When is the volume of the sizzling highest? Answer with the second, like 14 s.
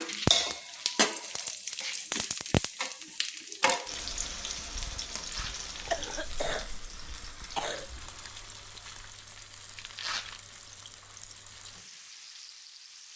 1 s.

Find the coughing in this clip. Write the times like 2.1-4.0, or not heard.
5.9-8.2.